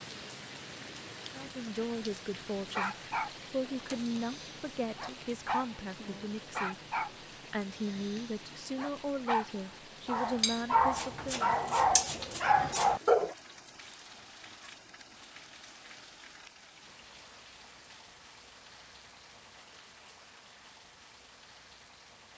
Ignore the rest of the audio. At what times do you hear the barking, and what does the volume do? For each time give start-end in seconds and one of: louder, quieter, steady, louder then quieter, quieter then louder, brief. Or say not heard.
2.5-3.3 brief
4.1-5.7 brief
6.5-7.1 brief
7.8-13.3 louder.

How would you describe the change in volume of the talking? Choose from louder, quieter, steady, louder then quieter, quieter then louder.
steady.